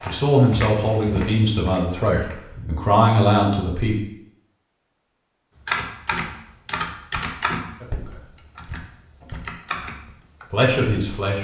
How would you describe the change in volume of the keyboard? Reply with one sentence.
The loudness of the keyboard goes down, then up.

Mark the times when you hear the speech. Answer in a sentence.
You can hear the speech from 0.1 to 4.0 s, from 7.8 to 8.3 s and from 10.5 to 11.3 s.